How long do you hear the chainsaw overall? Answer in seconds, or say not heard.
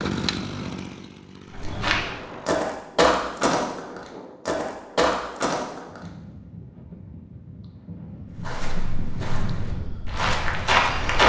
3 s.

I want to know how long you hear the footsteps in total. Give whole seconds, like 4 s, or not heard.
7 s.